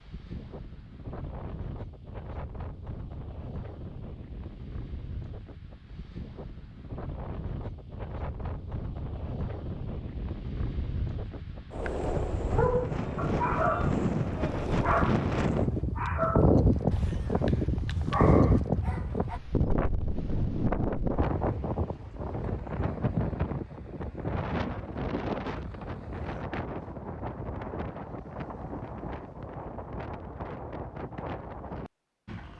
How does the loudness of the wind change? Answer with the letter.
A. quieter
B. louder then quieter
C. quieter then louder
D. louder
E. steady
B.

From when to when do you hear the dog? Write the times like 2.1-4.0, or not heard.
11.8-14.0, 14.8-19.4.